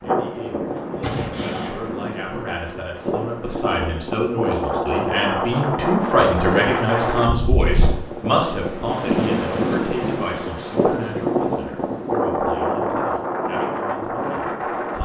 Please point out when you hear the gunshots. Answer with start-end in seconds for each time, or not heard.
1.0-1.9.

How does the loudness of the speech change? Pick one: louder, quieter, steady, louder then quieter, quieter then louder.
louder then quieter.